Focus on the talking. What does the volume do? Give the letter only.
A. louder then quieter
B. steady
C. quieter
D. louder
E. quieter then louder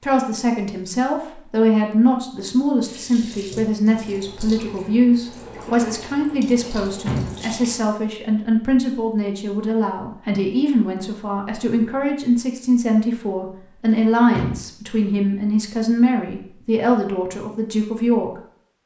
B.